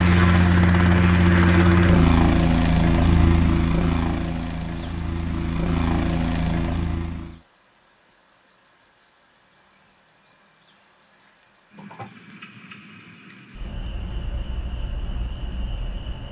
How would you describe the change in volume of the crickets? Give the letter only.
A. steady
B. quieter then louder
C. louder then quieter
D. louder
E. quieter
C.